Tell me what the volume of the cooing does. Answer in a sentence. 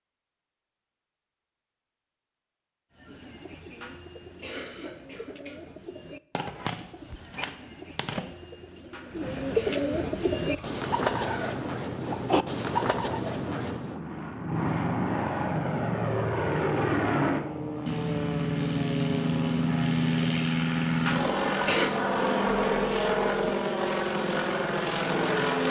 The volume of the cooing goes up.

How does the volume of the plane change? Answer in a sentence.
The volume of the plane goes up.